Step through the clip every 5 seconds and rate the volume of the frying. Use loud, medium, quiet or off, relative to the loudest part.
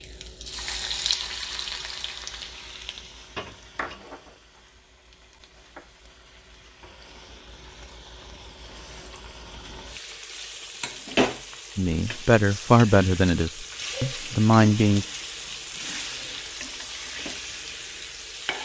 loud, quiet, loud, loud.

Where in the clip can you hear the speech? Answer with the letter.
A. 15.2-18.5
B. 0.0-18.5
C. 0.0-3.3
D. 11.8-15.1
D.